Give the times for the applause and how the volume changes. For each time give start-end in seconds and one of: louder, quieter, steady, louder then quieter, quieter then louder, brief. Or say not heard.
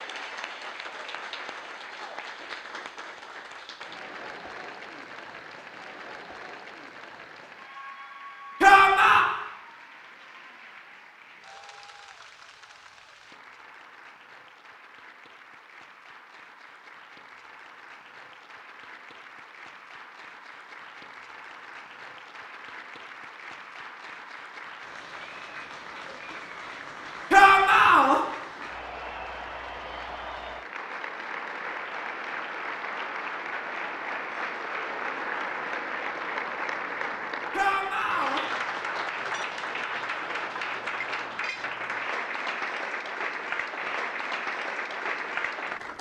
0.0-45.9 quieter then louder.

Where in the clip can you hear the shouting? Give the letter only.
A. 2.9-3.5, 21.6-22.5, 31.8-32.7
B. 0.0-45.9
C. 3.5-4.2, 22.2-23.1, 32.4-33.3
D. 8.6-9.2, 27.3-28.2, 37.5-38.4
D.